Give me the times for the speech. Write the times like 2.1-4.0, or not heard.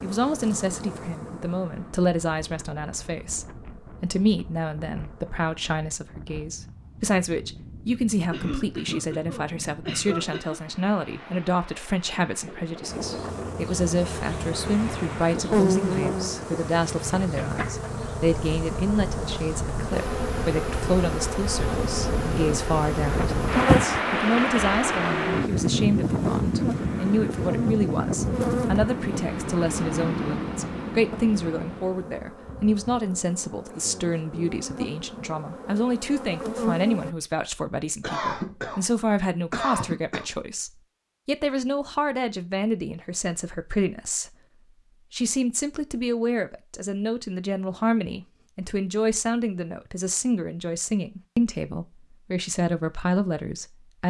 0.0-44.4, 45.1-54.0.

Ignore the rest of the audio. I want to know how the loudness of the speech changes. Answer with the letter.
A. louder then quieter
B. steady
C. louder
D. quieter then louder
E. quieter
B.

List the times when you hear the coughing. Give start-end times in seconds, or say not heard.
8.3-10.6, 38.0-40.2.